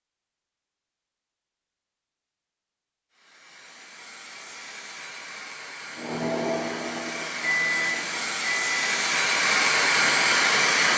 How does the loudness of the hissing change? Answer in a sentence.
The volume of the hissing goes up.